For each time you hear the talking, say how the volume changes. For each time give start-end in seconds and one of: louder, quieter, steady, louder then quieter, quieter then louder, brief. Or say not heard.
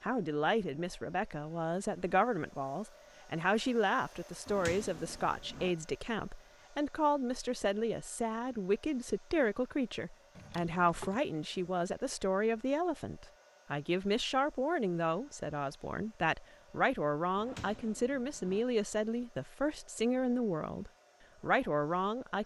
0.0-22.4 steady.